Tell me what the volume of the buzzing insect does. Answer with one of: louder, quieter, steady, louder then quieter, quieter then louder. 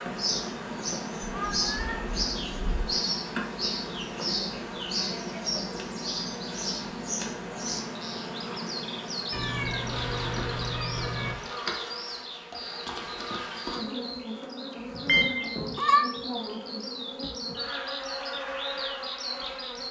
steady.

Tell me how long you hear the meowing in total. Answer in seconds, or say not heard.
5 s.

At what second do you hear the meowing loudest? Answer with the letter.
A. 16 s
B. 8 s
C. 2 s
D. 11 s
A.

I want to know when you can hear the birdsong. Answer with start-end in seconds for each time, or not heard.
0.0-19.8.